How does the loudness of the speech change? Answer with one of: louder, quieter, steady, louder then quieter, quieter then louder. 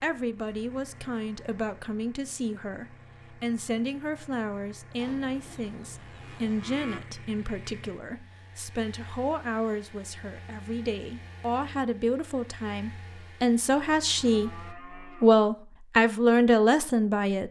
louder.